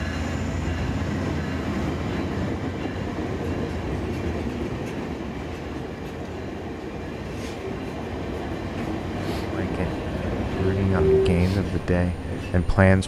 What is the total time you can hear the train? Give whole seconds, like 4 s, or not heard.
13 s.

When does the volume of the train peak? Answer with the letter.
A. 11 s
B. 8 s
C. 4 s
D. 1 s
A.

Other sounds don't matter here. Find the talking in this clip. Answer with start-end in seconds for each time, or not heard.
9.5-13.0.